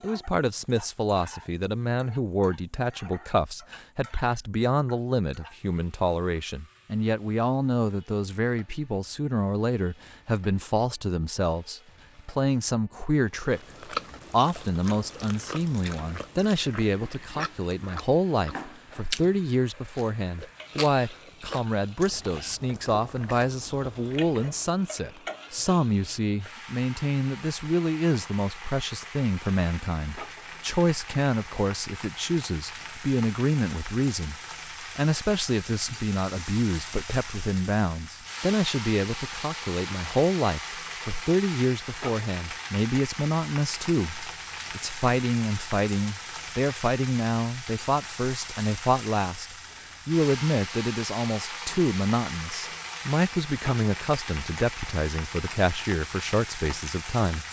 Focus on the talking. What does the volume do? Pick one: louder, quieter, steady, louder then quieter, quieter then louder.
steady.